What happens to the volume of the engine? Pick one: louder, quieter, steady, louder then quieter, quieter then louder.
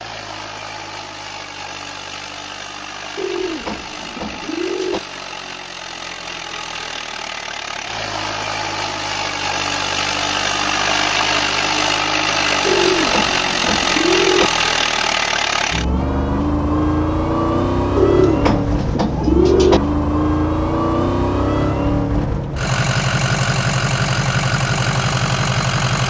louder.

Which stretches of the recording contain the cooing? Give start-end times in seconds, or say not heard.
3.1-5.0, 12.6-14.5, 17.9-19.8.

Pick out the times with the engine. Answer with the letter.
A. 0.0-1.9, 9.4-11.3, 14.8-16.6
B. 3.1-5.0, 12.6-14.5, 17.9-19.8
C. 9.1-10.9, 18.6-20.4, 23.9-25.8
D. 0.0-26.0
D.